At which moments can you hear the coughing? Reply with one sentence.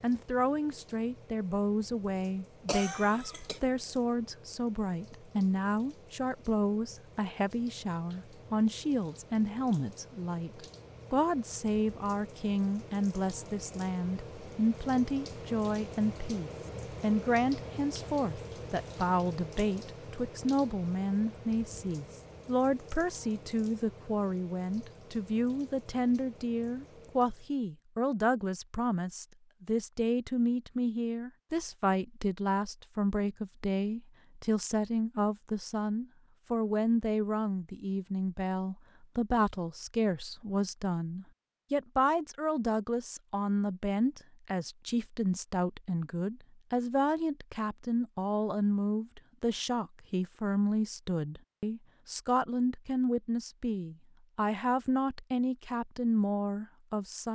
You can hear the coughing from 2.6 to 3.6 s.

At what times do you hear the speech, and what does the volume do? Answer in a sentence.
You can hear the speech from 0.0 to 57.3 s, at a steady volume.